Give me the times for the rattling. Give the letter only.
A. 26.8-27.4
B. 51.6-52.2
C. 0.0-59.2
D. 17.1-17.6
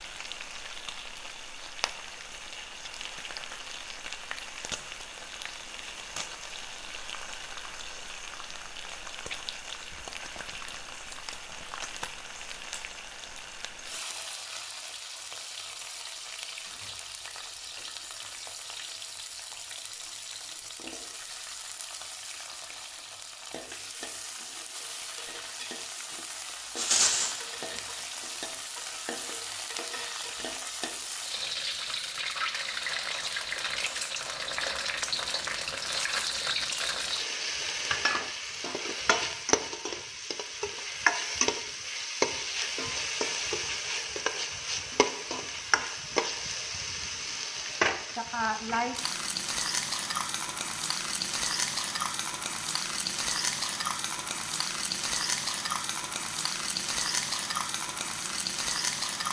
A.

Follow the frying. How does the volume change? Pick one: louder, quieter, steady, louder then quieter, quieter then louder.
louder.